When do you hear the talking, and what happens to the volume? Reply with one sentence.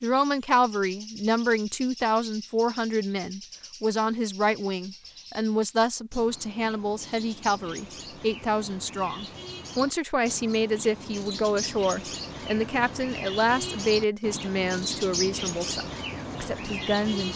You can hear the talking from 0.0 to 17.3 s, at a steady volume.